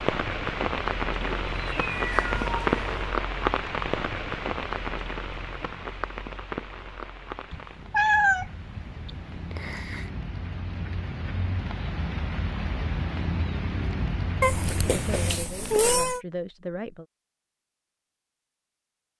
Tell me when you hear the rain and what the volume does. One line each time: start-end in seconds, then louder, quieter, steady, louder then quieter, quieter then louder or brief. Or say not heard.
0.0-15.4 quieter then louder.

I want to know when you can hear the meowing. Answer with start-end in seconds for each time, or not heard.
1.2-3.1, 7.5-10.1, 14.4-16.2.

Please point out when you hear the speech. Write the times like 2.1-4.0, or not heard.
14.9-17.1.